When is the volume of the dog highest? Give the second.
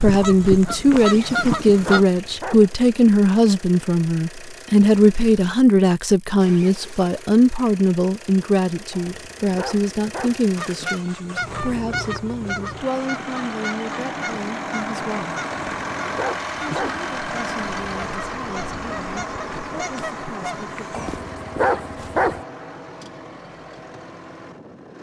22 s.